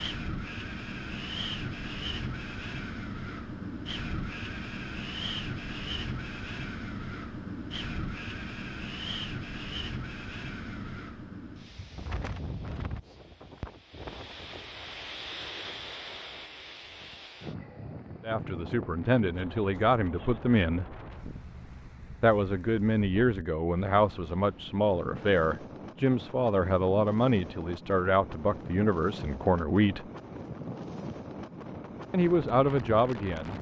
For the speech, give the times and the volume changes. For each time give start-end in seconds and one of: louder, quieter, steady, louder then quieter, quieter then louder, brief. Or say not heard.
18.2-20.9 brief
22.2-30.1 steady
32.1-33.5 brief.